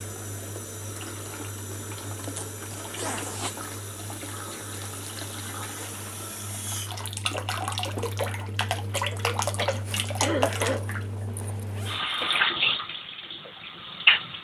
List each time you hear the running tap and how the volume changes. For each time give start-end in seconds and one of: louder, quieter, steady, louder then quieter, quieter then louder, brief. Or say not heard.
0.0-14.3 louder.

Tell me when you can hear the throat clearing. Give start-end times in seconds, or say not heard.
8.9-10.8.